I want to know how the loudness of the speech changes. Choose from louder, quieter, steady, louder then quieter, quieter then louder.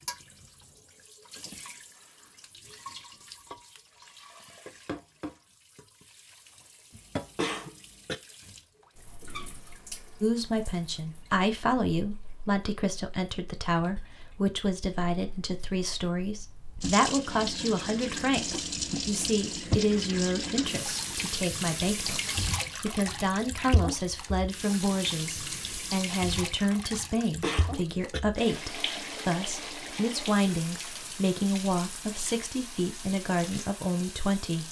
steady.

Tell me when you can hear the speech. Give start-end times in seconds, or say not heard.
10.2-34.6.